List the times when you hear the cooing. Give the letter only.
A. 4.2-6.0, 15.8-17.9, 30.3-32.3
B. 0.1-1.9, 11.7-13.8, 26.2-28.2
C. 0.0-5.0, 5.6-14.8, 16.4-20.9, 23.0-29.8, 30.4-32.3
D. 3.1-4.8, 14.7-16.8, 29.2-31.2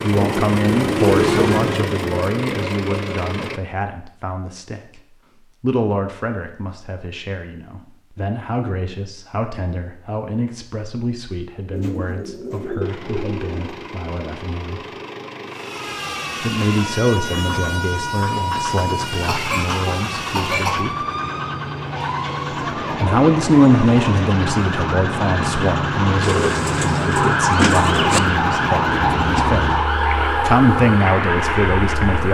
B.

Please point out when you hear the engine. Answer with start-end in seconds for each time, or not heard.
0.0-3.6, 12.8-32.3.